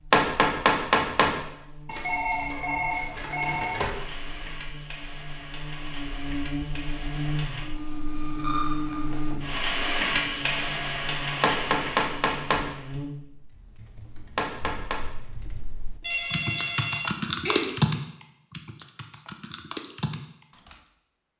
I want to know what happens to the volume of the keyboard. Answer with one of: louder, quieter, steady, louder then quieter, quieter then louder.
louder then quieter.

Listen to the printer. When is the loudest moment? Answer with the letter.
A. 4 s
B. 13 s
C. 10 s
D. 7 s
C.